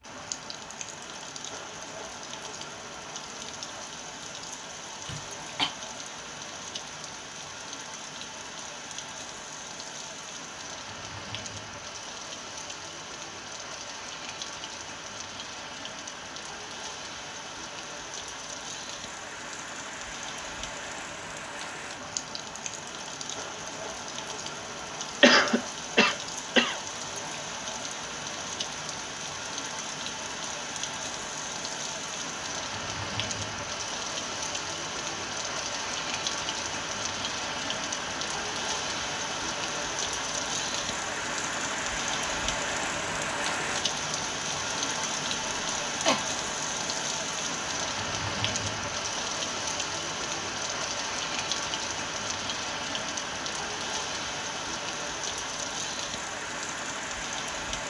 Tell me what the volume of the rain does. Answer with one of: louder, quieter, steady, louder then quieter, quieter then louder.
louder.